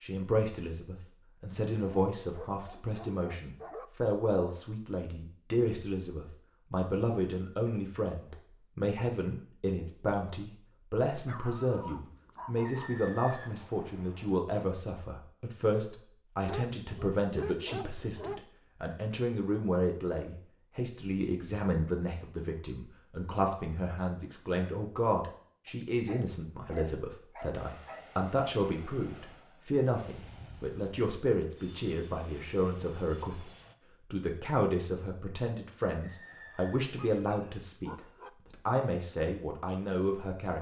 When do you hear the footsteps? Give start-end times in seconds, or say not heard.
not heard.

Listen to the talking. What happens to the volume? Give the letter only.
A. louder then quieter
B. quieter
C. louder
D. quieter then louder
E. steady
E.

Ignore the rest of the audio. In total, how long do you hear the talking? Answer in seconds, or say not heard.
40 s.